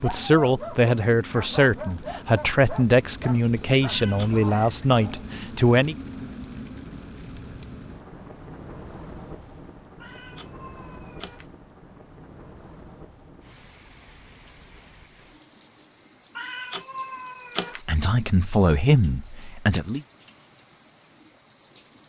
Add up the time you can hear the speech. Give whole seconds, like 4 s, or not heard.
8 s.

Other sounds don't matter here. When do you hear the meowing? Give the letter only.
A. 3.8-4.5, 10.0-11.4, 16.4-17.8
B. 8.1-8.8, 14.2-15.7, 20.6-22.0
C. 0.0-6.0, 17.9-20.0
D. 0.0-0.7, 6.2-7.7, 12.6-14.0
A.